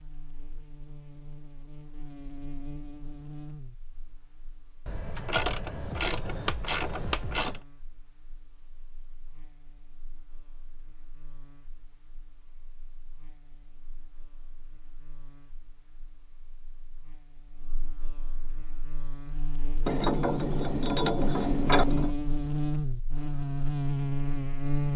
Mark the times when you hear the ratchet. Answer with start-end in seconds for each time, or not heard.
4.8-7.6, 19.9-22.1.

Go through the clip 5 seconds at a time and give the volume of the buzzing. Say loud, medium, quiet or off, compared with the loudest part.
quiet, quiet, quiet, quiet, loud.